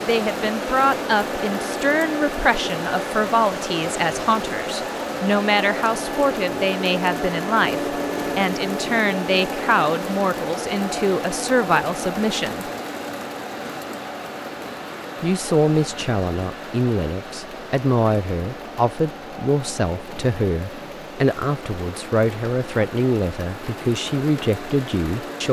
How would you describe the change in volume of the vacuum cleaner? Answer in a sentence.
The loudness of the vacuum cleaner goes down.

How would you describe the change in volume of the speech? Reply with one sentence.
The loudness of the speech stays about the same.